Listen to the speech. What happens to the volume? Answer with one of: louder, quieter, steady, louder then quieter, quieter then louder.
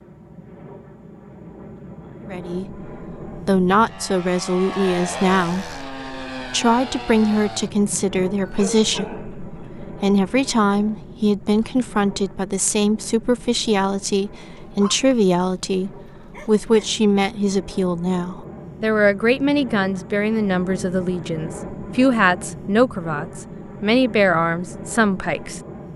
steady.